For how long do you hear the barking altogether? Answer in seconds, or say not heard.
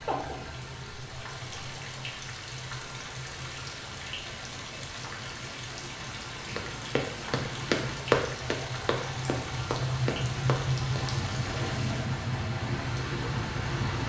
not heard.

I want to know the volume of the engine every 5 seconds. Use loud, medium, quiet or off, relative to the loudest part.
quiet, medium, loud.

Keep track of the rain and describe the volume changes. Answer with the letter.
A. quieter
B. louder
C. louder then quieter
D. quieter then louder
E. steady
E.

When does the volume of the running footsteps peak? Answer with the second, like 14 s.
8 s.